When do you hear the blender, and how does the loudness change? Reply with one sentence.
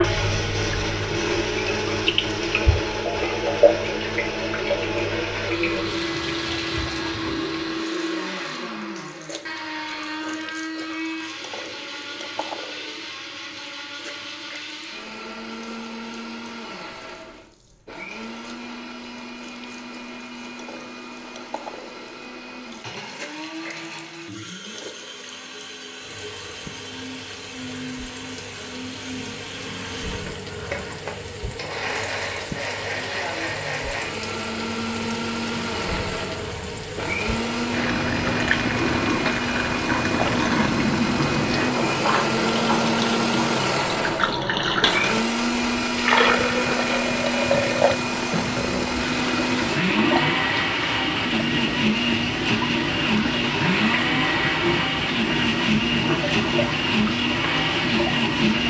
The blender can be heard from 0.0 to 58.6 s, getting quieter then louder.